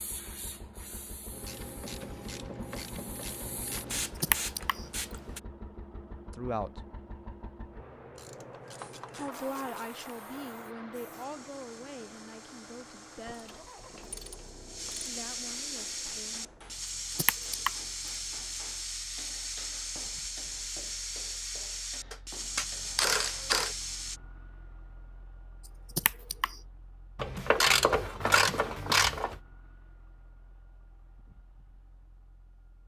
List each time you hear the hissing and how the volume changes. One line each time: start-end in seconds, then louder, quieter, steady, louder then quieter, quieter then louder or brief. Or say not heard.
0.0-5.4 quieter then louder
8.7-24.2 louder.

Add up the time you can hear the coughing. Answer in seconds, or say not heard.
2 s.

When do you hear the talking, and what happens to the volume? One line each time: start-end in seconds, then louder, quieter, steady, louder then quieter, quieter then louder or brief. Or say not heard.
6.3-6.8 brief
9.2-13.7 quieter
15.1-16.5 brief.